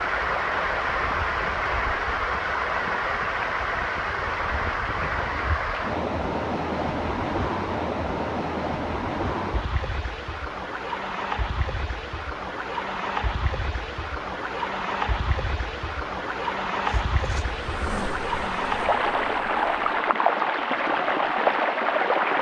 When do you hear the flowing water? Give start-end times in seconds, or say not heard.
0.0-22.3.